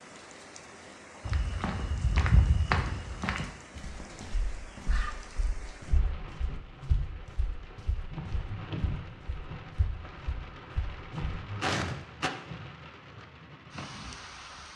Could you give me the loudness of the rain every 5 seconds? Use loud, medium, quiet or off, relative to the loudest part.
medium, loud, loud.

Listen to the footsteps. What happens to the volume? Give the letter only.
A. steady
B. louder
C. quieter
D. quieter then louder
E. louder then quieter
D.